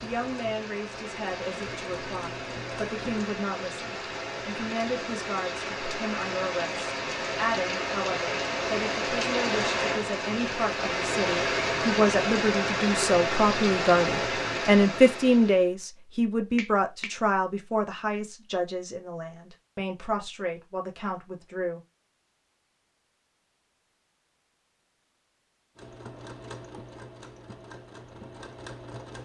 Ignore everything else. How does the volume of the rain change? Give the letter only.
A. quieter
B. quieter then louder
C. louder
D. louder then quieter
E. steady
C.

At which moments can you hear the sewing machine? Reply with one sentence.
You can hear the sewing machine from 0.0 to 3.3 s and from 25.8 to 29.1 s.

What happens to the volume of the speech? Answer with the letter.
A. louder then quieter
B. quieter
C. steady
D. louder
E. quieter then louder
A.